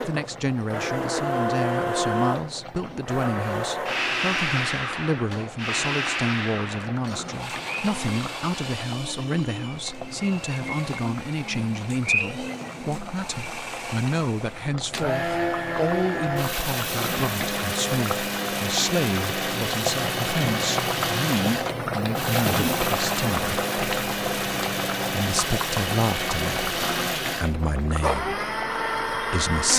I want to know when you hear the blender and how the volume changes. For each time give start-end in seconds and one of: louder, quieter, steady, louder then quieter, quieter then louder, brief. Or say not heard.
0.0-29.7 quieter then louder.